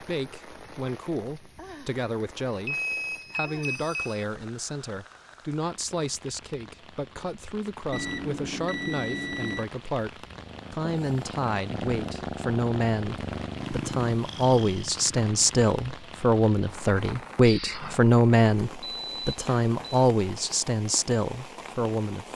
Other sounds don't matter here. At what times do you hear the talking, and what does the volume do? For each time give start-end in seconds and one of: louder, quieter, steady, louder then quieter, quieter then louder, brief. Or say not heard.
0.0-22.3 louder.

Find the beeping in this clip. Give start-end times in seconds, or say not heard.
2.6-4.2, 7.9-9.7, 18.8-20.1.